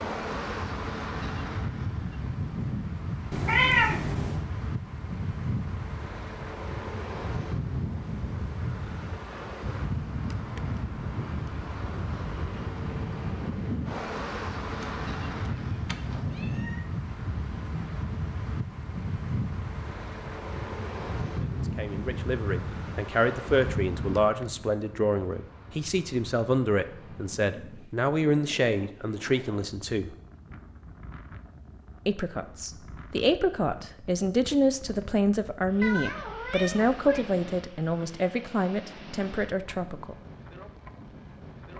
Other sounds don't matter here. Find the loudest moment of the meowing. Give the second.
4 s.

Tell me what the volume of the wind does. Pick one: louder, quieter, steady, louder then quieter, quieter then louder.
quieter.